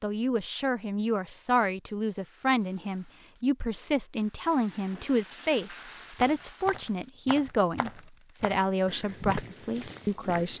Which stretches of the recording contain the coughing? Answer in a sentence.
The coughing can't be heard in this clip.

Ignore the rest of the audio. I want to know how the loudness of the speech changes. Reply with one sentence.
The volume of the speech stays about the same.